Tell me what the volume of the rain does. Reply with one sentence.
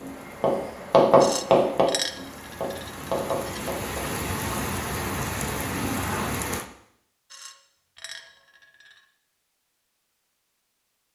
The volume of the rain goes up.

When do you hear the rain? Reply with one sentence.
The rain can be heard from 0.0 to 6.7 s.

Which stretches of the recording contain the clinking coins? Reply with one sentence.
You can hear the clinking coins from 1.2 to 3.7 s and from 7.3 to 9.0 s.